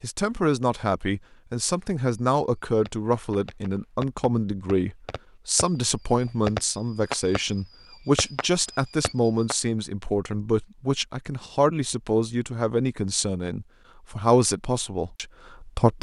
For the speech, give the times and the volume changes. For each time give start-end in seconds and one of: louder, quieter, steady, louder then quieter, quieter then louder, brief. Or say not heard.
0.0-15.9 steady.